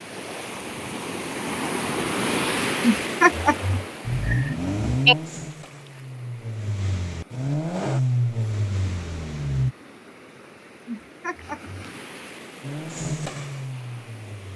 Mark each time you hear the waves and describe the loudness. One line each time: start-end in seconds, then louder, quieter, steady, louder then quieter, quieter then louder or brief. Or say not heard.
0.0-14.5 quieter then louder.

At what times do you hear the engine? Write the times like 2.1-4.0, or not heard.
4.0-9.8, 12.6-14.5.